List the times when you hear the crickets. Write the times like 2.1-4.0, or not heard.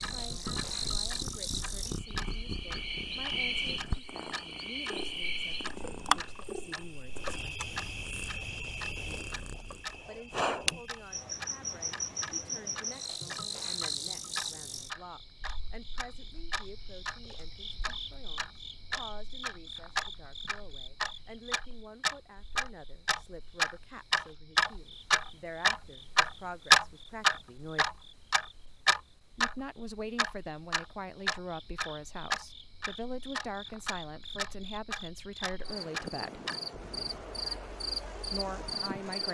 0.0-39.2.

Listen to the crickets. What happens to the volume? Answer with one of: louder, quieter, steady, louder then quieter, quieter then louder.
quieter then louder.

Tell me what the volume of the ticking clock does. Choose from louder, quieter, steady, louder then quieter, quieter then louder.
louder then quieter.